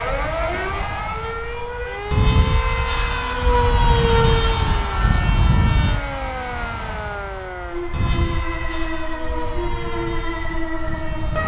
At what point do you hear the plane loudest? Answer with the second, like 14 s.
4 s.